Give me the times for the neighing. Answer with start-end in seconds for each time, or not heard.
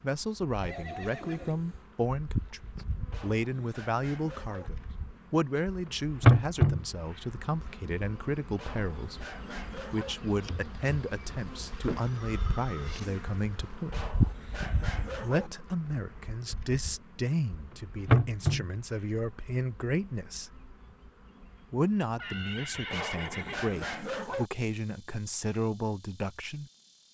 0.6-1.9, 11.9-13.0, 22.1-23.6.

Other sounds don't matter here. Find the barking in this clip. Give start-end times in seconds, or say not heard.
3.1-4.7, 8.6-10.2, 13.9-15.5, 22.9-24.5.